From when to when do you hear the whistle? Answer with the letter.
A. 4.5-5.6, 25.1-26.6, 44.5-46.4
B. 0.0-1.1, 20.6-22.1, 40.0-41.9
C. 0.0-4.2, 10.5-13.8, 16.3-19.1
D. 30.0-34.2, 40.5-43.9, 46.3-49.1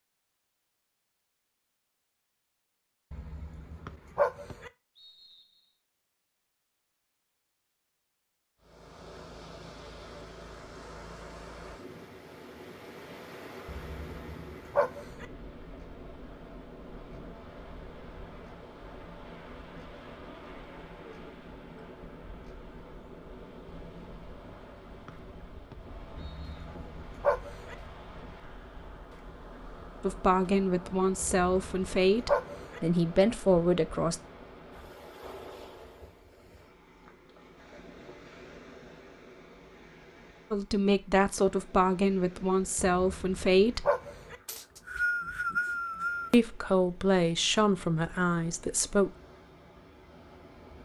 A.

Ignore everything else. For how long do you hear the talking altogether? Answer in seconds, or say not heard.
10 s.